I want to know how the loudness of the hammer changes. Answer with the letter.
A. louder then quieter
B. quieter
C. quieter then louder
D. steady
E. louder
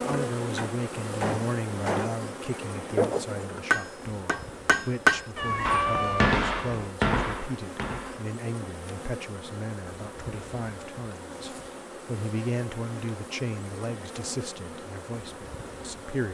A.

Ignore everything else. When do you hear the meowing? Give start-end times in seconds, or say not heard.
5.3-7.0.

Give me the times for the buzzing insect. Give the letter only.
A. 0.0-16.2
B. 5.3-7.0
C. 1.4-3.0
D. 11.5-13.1
A.